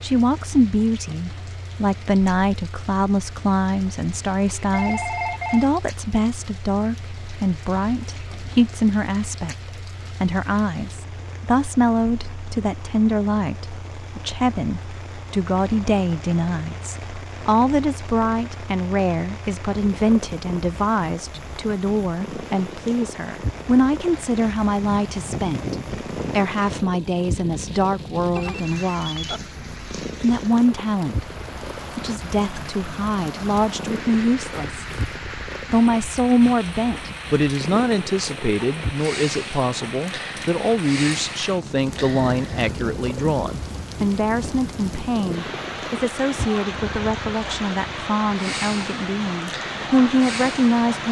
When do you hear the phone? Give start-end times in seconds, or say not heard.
4.5-5.7, 28.4-29.4.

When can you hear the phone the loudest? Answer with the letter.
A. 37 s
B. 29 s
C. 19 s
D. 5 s
D.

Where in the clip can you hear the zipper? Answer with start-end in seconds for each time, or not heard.
34.5-35.1.